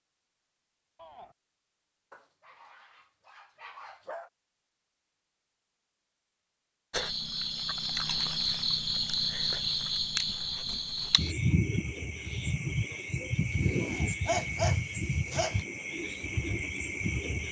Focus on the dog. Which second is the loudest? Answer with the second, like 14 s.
14 s.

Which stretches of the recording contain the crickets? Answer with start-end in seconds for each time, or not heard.
6.9-17.4.